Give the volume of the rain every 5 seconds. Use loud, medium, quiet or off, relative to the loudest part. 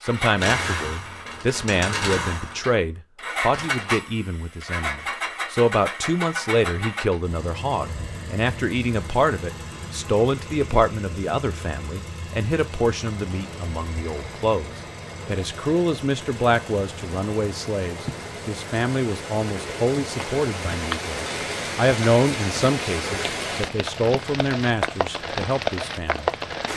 off, off, quiet, medium, loud, loud.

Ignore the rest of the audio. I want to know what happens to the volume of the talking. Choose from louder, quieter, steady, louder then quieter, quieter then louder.
steady.